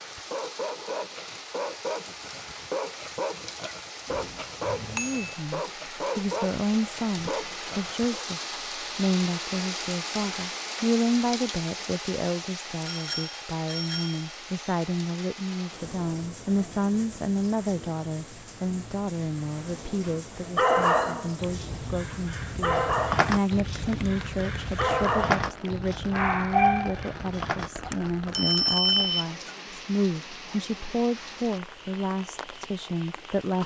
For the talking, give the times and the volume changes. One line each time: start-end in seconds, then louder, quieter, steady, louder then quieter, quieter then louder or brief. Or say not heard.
4.9-33.6 steady.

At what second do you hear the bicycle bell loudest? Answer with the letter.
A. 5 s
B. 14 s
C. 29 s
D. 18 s
C.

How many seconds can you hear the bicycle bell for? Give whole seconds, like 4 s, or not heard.
5 s.